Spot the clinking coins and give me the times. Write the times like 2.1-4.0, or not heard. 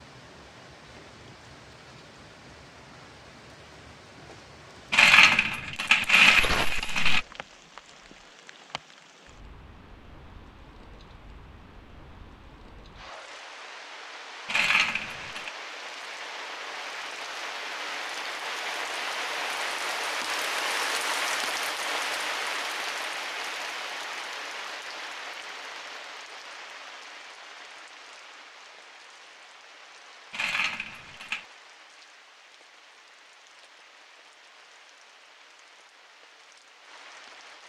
4.9-7.2, 14.4-15.5, 30.3-31.4.